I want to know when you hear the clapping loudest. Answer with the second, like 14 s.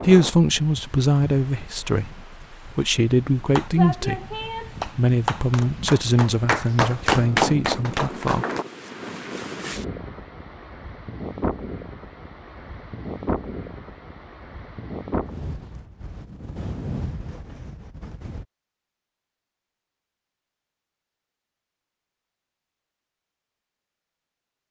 7 s.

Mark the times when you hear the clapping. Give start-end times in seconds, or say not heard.
3.4-8.7.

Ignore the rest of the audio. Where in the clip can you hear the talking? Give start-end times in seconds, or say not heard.
0.0-8.4.